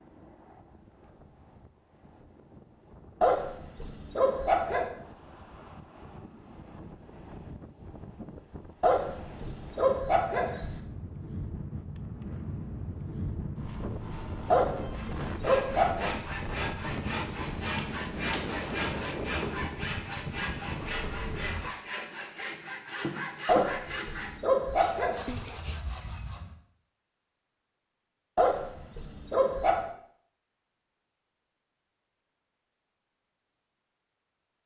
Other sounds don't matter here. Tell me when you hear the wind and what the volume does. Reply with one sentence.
You can hear the wind from 0.0 to 21.8 s, getting louder.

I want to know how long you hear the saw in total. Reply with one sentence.
The saw can be heard for 12 seconds in total.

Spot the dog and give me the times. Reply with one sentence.
You can hear the dog from 3.2 to 4.8 s, from 8.8 to 10.8 s, from 14.5 to 16.1 s, from 23.4 to 25.4 s and from 28.4 to 29.9 s.